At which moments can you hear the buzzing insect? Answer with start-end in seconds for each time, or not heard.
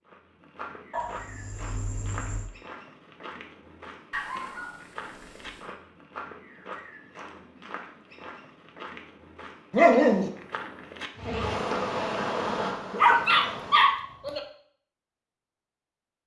11.2-13.9.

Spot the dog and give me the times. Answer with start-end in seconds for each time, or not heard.
0.9-2.5, 4.1-5.8, 9.7-10.3, 12.9-14.4.